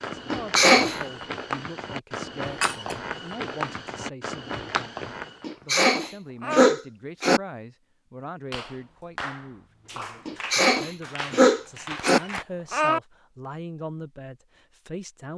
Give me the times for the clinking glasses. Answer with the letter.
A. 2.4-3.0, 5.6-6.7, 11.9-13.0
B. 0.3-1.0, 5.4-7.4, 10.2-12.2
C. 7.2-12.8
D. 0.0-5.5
A.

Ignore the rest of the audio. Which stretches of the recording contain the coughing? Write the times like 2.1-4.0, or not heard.
0.3-1.0, 5.4-7.4, 10.2-12.2.